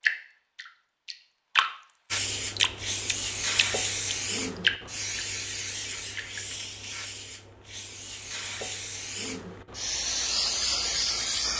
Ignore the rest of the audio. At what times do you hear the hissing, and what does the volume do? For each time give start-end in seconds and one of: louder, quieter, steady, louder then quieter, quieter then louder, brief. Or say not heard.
2.1-11.5 quieter then louder.